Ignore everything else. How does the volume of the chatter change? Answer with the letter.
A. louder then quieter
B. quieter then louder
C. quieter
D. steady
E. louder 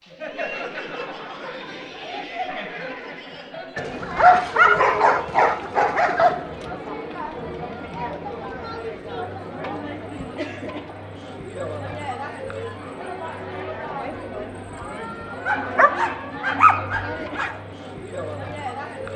D.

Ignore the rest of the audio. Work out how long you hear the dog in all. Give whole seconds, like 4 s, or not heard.
5 s.